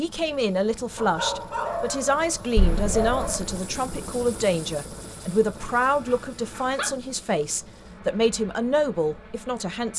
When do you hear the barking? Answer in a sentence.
You can hear the barking from 0.9 to 3.4 s and from 5.8 to 7.0 s.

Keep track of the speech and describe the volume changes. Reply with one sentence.
The volume of the speech stays about the same.